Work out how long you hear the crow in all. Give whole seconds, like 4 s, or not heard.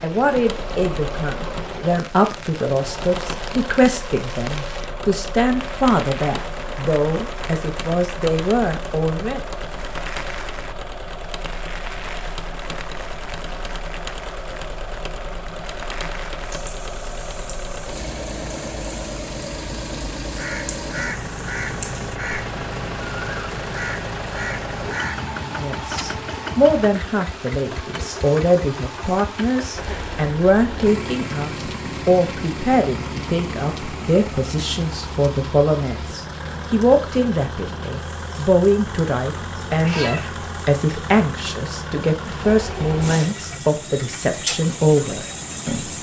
5 s.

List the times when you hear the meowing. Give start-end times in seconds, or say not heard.
39.8-40.2.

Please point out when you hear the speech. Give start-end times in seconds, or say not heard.
0.0-9.4, 25.4-45.9.